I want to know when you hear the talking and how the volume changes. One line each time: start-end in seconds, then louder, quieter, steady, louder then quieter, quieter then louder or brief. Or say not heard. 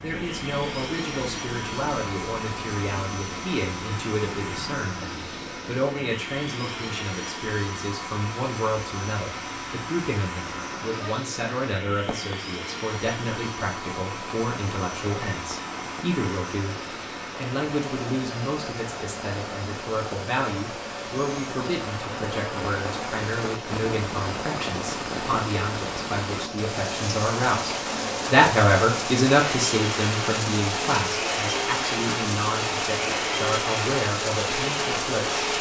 0.0-27.7 steady
28.3-35.5 quieter.